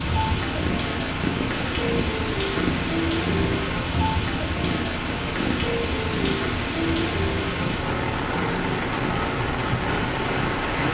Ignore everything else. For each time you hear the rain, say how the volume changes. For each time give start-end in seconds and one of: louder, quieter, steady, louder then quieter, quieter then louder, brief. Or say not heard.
0.0-10.8 steady.